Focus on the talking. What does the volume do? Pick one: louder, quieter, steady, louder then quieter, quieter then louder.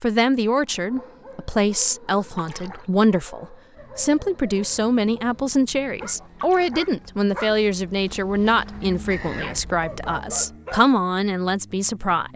steady.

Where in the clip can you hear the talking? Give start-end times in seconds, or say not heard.
0.0-12.3.